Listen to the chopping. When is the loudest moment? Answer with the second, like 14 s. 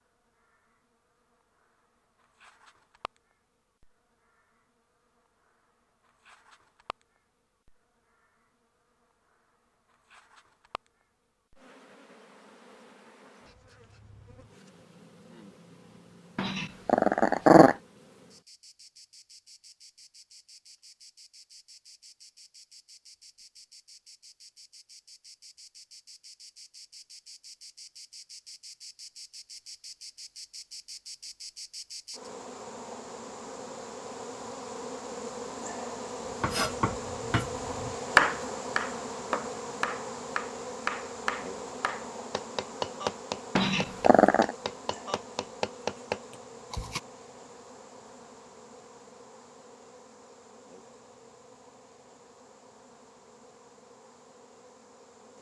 38 s.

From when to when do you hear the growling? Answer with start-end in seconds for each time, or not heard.
16.4-17.8, 43.5-44.5.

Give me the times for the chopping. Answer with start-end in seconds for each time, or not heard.
36.4-47.0.